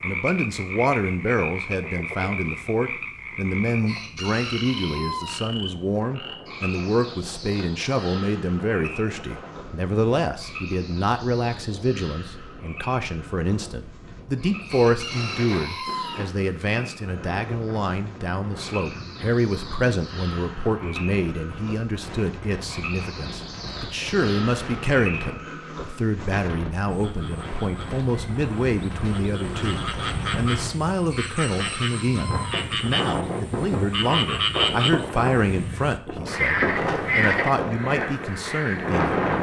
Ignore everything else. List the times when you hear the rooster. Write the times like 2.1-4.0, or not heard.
3.9-5.4, 14.7-16.2, 31.1-32.6.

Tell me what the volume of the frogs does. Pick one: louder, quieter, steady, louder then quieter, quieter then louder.
quieter then louder.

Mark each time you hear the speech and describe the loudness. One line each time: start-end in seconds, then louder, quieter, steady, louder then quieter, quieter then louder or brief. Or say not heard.
0.0-39.1 steady.